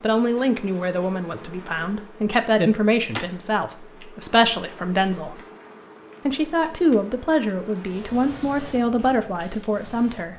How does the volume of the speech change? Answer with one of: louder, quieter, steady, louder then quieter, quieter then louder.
steady.